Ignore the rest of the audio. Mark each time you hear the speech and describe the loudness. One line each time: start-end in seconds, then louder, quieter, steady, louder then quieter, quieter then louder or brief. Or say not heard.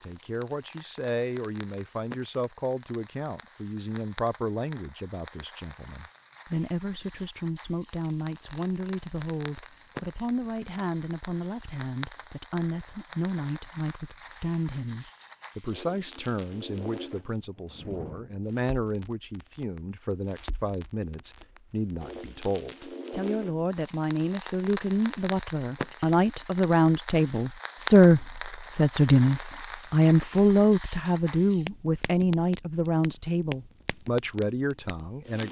0.0-35.4 louder.